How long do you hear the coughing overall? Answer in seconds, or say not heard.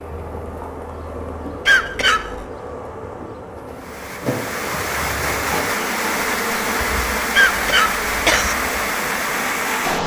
2 s.